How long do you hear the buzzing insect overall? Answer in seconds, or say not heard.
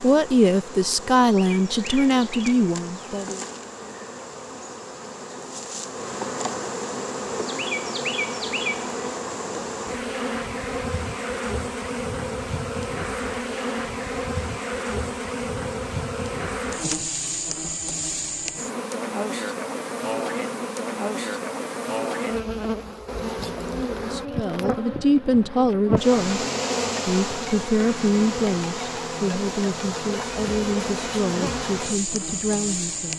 33 s.